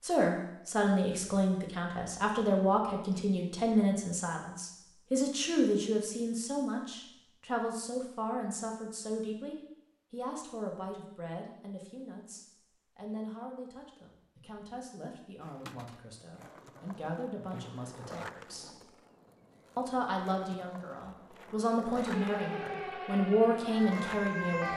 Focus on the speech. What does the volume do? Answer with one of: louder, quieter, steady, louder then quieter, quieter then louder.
quieter then louder.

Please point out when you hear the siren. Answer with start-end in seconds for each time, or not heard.
22.1-24.7.